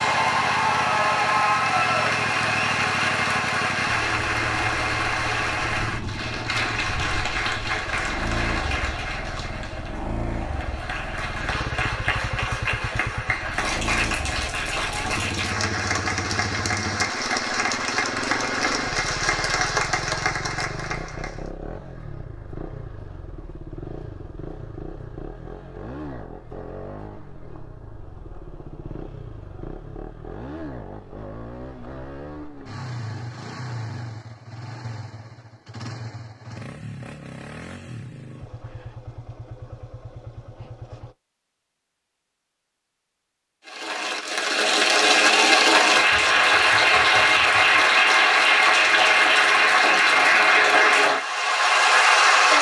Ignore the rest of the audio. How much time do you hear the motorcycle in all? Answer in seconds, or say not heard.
41 s.